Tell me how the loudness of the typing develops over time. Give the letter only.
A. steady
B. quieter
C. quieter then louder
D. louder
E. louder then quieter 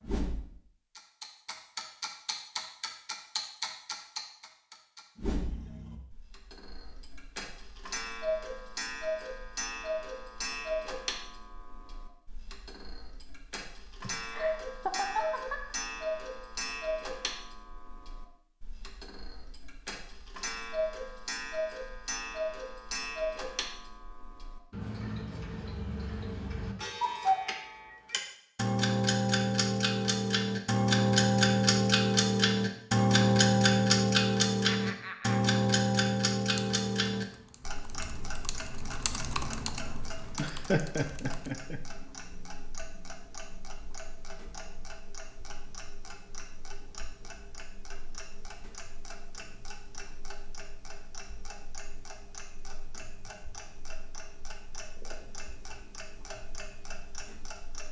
E.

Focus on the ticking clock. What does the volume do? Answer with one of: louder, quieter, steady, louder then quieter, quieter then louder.
louder then quieter.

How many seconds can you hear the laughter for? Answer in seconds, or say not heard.
4 s.